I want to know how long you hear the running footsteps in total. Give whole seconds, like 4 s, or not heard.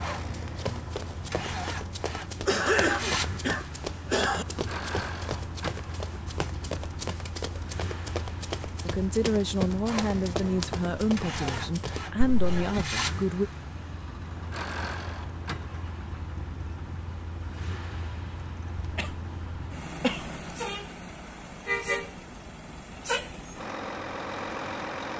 12 s.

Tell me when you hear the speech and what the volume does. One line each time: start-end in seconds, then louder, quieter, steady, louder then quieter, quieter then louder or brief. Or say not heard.
8.8-13.5 steady.